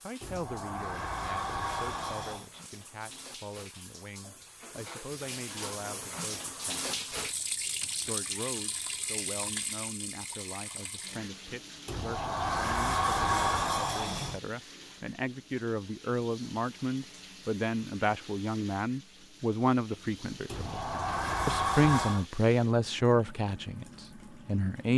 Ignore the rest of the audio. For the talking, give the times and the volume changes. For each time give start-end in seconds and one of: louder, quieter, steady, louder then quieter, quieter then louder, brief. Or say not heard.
0.0-24.9 louder.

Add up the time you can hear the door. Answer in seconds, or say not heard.
7 s.